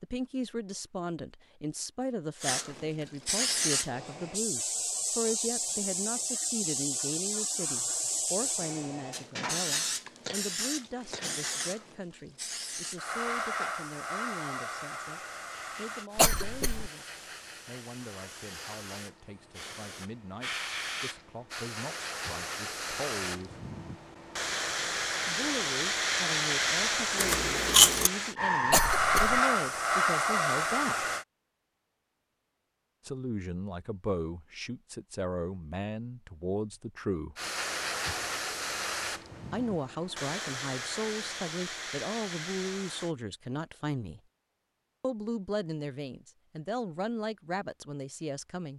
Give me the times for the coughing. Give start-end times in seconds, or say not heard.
16.1-16.9, 28.7-29.4.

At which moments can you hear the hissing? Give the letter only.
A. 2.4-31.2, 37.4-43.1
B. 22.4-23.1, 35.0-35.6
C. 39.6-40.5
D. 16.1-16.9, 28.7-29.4
A.